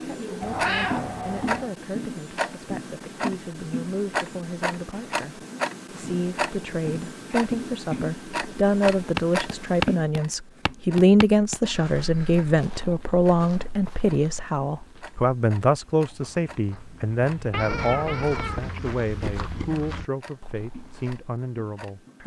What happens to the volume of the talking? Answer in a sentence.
The volume of the talking goes up, then down.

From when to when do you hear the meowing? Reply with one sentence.
You can hear the meowing from 0.4 to 1.7 s and from 17.5 to 18.8 s.